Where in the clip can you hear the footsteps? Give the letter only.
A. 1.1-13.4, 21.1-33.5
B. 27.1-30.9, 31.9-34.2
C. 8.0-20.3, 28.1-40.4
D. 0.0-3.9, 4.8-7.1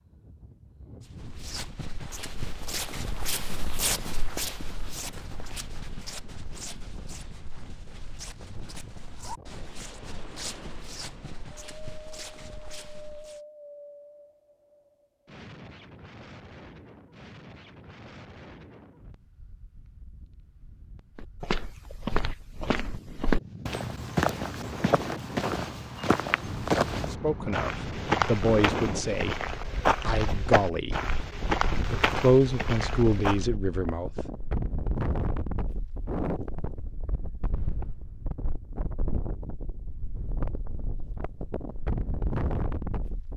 A.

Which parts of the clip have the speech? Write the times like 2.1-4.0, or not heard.
27.1-30.9, 31.9-34.2.